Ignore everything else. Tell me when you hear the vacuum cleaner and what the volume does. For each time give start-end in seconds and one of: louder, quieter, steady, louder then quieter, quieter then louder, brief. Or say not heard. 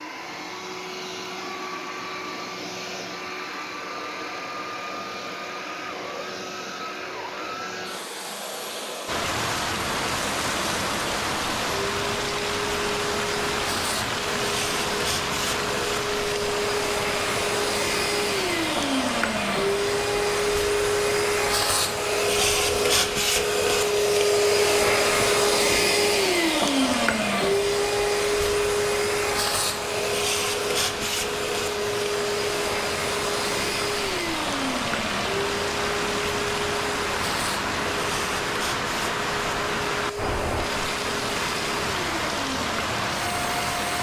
0.0-43.9 louder then quieter.